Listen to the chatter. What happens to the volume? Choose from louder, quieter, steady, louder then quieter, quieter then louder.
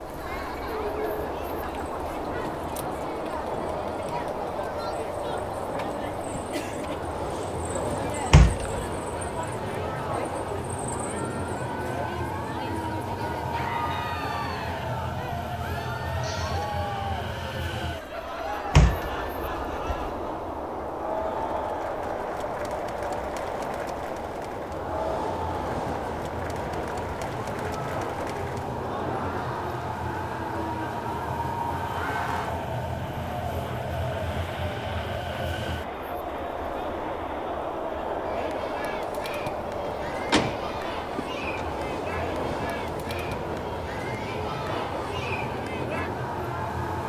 steady.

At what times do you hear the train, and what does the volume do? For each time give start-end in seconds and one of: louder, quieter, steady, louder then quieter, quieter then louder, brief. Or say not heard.
0.0-47.0 steady.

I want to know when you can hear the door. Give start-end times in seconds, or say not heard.
8.3-8.8, 18.7-20.1, 39.9-41.6.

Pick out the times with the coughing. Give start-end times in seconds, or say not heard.
16.1-16.7.